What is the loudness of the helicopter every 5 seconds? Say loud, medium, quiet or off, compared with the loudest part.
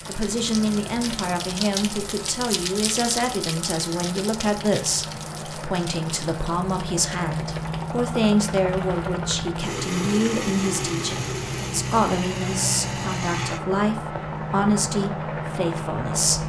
medium, loud, loud, loud.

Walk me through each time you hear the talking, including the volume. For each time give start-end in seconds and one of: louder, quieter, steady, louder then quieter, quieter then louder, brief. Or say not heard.
0.1-16.4 steady.